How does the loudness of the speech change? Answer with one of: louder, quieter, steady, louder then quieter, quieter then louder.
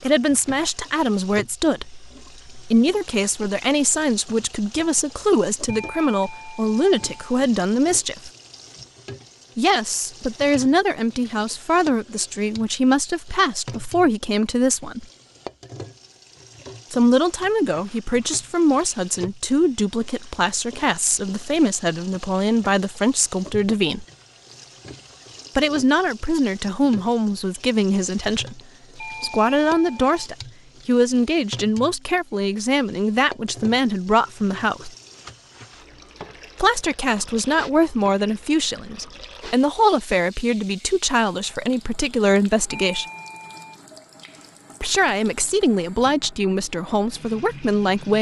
steady.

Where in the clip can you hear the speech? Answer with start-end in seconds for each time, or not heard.
0.0-8.3, 9.6-15.1, 16.9-24.1, 25.6-34.9, 36.5-43.0, 44.8-48.1.